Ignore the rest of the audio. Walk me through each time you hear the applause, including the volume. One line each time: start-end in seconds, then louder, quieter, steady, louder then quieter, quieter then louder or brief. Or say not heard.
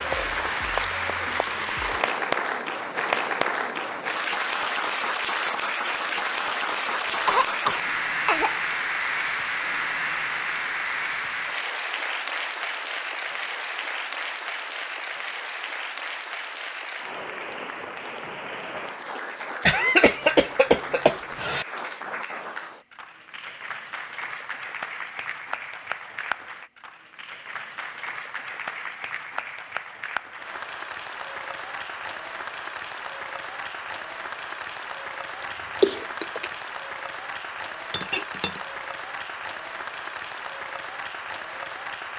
0.0-42.1 quieter.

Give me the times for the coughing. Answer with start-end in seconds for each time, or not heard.
7.0-8.8, 19.6-21.6, 35.4-36.5.